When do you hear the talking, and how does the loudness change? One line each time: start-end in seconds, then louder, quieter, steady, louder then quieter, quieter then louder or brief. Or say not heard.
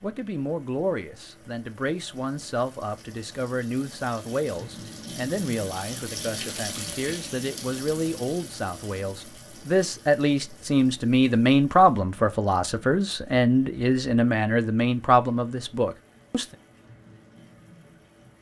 0.0-16.6 louder.